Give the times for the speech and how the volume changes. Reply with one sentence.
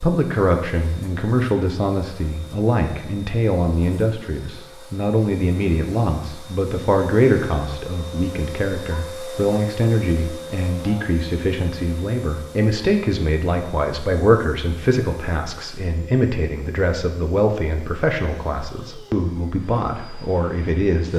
You can hear the speech from 0.0 to 21.1 s, at a steady volume.